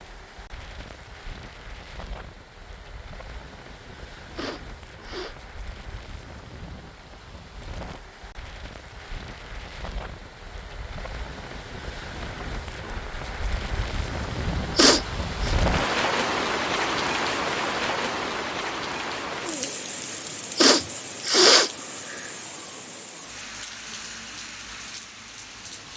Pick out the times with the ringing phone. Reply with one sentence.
You can't hear the ringing phone here.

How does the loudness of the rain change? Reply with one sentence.
The volume of the rain goes up, then down.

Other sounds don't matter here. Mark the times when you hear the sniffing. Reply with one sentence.
The sniffing can be heard from 4.3 to 5.3 s, from 14.8 to 15.6 s and from 20.6 to 22.3 s.